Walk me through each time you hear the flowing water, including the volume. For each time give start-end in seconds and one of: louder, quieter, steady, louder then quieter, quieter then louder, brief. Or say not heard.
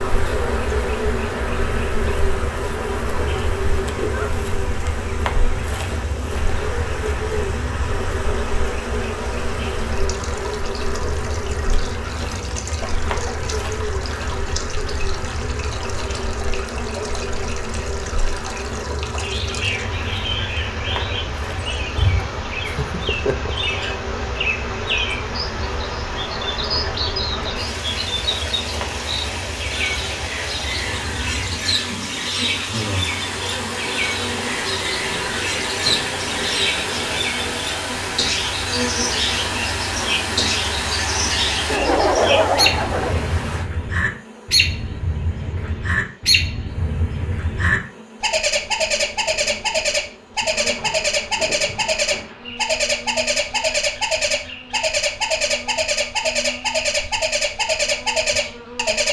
0.0-43.6 louder.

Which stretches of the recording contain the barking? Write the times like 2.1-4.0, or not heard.
not heard.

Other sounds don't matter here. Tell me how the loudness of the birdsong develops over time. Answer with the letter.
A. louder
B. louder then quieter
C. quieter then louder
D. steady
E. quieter
A.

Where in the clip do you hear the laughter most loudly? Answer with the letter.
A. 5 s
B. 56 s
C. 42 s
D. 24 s
C.